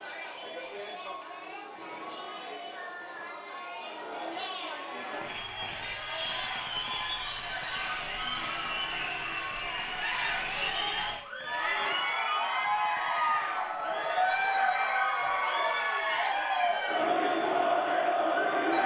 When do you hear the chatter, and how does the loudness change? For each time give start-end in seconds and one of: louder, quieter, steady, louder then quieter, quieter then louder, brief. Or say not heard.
0.0-18.8 louder.